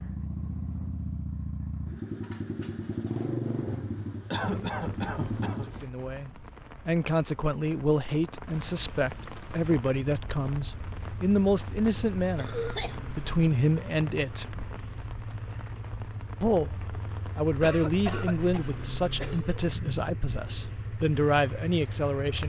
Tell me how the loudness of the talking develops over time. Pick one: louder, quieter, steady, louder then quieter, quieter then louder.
steady.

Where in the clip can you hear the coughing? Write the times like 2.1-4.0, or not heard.
4.3-5.7, 12.3-13.0, 17.6-19.6.